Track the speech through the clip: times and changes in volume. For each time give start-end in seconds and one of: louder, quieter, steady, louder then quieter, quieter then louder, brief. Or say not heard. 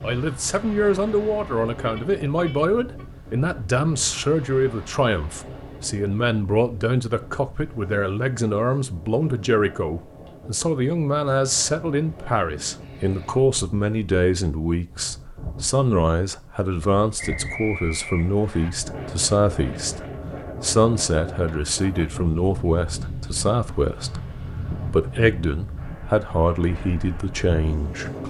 0.0-28.2 steady.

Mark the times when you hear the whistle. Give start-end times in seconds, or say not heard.
17.1-18.7.